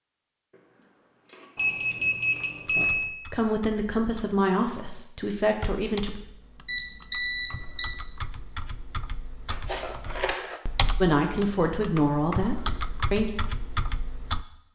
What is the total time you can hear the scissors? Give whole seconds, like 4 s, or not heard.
3 s.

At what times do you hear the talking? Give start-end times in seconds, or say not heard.
3.3-6.2, 11.0-13.3.